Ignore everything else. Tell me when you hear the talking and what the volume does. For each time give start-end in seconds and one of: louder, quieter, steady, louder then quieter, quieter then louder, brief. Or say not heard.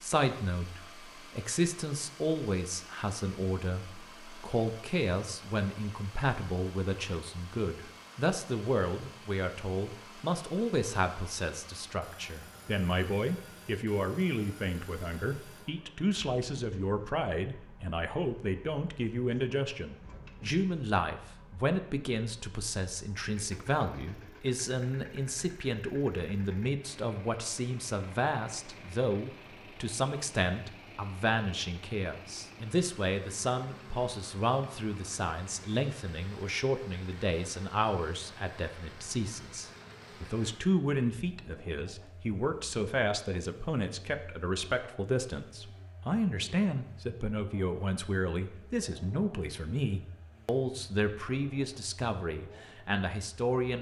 0.0-53.7 steady.